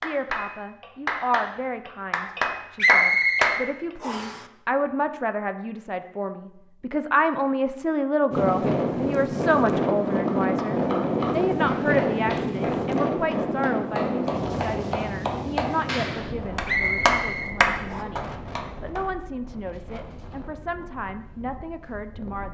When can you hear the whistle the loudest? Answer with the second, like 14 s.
3 s.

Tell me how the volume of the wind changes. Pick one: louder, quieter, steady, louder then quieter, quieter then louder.
quieter.